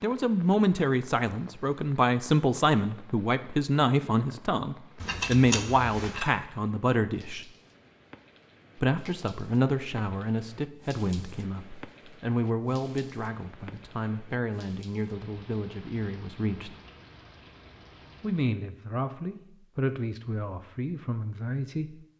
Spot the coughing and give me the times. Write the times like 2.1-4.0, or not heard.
not heard.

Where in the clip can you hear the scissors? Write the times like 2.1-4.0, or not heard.
5.0-6.3.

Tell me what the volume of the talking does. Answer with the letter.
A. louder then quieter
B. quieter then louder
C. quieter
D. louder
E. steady
C.